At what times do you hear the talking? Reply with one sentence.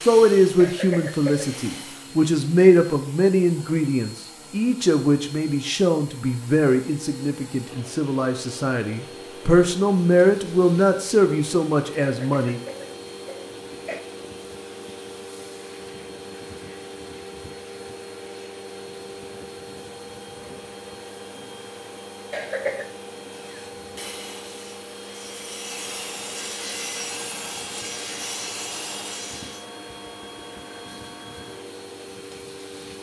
You can hear the talking from 0.0 to 12.6 s.